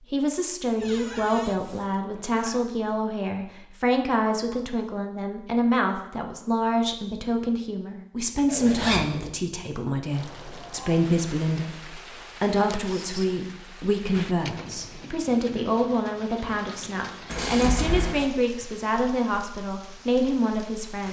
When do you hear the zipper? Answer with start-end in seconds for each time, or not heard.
0.8-2.7, 8.4-9.3, 17.2-18.3.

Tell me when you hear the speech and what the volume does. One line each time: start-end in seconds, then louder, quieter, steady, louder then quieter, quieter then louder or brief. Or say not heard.
0.1-21.0 steady.